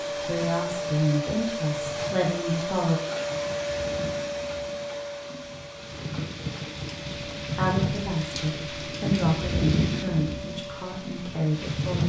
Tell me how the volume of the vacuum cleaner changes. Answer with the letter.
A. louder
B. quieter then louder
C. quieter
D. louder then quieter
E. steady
C.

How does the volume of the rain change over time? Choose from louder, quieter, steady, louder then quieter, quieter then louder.
louder.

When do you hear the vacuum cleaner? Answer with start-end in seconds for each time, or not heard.
0.0-11.8.